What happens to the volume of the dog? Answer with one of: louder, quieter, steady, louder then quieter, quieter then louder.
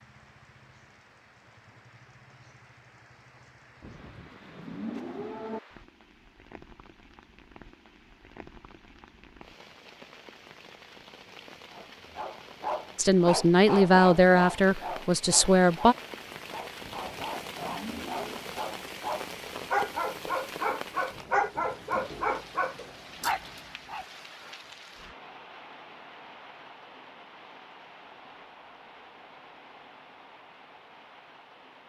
quieter then louder.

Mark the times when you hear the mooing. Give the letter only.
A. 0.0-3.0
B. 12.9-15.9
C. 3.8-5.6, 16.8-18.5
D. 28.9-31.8
C.